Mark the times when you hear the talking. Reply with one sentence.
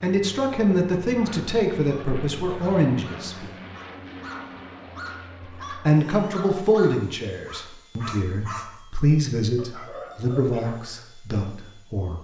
The talking can be heard from 0.0 to 3.5 s and from 5.4 to 12.2 s.